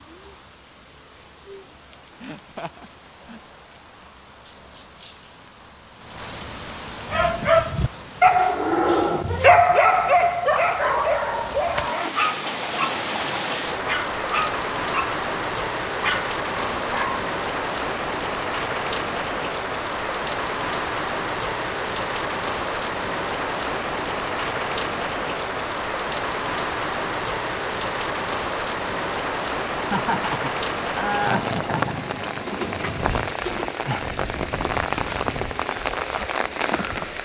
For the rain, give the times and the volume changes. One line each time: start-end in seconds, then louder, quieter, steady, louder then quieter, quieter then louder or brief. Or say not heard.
0.0-37.2 louder.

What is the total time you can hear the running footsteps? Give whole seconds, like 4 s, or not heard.
not heard.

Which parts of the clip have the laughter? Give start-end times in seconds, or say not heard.
2.2-3.4, 29.8-31.9.